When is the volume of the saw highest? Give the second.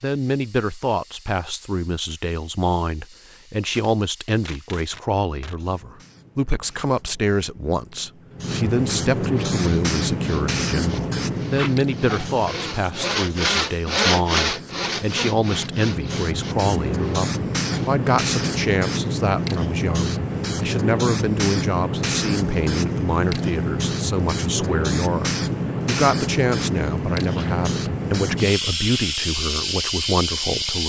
14 s.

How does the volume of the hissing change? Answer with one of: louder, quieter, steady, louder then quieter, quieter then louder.
louder.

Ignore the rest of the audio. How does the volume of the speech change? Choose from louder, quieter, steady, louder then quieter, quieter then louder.
steady.